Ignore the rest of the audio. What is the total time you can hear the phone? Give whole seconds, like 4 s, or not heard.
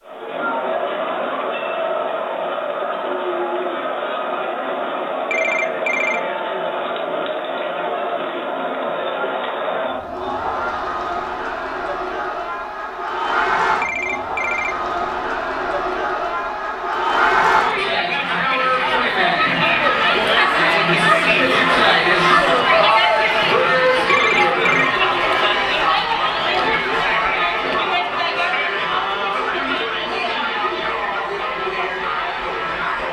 3 s.